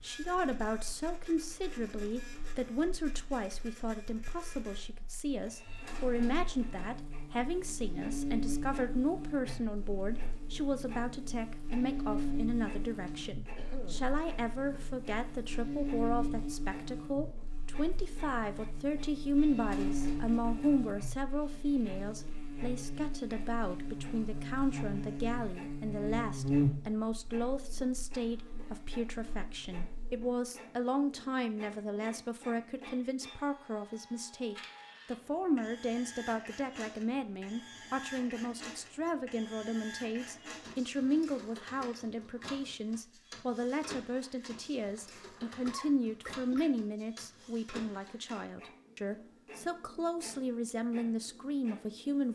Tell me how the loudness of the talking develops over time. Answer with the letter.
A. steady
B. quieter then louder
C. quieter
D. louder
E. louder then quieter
A.